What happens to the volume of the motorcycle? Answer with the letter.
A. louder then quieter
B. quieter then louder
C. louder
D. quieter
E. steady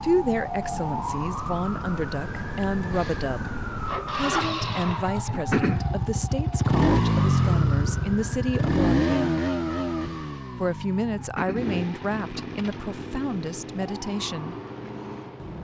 A.